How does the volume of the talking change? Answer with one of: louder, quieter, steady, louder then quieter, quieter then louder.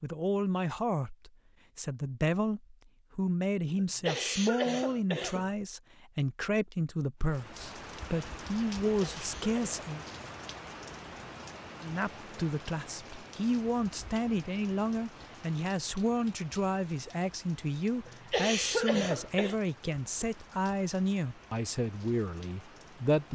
steady.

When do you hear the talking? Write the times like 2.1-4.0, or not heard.
0.0-10.1, 11.8-23.3.